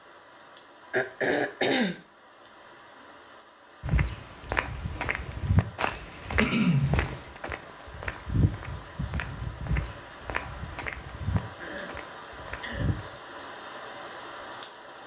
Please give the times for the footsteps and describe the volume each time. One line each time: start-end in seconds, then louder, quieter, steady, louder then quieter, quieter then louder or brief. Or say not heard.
3.8-13.1 quieter.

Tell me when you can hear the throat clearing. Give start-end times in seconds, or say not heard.
0.9-2.0, 6.0-7.2, 11.6-12.8.